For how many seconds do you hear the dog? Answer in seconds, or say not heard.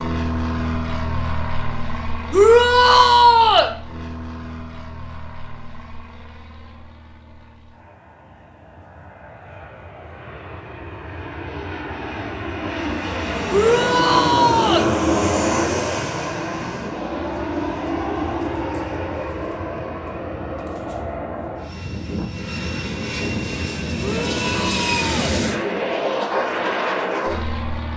not heard.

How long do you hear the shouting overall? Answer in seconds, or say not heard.
4 s.